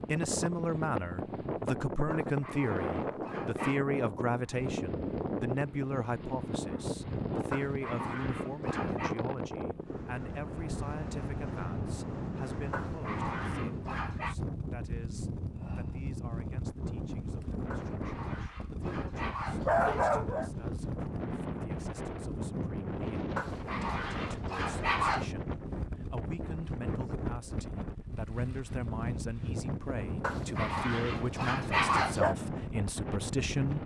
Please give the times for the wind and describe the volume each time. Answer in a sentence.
The wind can be heard from 0.0 to 33.8 s, at a steady volume.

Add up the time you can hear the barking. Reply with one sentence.
You can hear the barking for 12 seconds altogether.